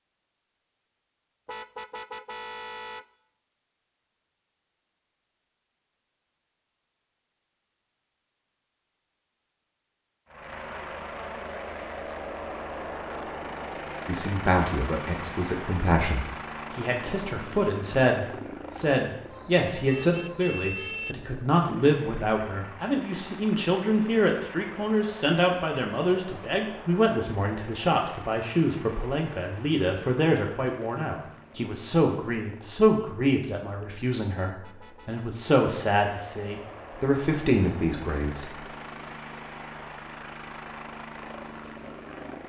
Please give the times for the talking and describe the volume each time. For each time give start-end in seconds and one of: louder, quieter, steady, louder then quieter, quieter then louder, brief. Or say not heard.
14.1-38.6 steady.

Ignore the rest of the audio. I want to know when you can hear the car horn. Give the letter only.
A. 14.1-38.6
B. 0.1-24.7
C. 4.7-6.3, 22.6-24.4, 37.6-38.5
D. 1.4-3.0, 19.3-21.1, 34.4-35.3
D.